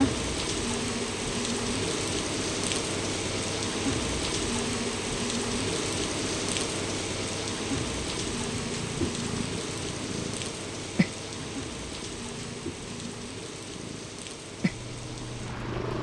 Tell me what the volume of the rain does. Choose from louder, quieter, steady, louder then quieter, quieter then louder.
quieter.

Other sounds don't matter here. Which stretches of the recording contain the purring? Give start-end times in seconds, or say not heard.
7.5-15.9.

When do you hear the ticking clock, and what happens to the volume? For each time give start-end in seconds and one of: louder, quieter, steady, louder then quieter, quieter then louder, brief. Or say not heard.
not heard.